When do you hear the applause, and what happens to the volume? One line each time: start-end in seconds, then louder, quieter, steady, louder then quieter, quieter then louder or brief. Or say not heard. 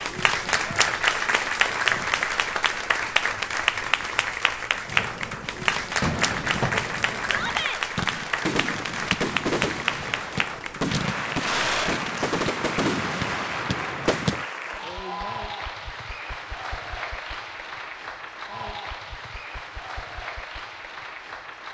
0.0-21.6 quieter.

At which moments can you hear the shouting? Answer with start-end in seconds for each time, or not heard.
7.2-7.8.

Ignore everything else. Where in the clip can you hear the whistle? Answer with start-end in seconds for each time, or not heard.
not heard.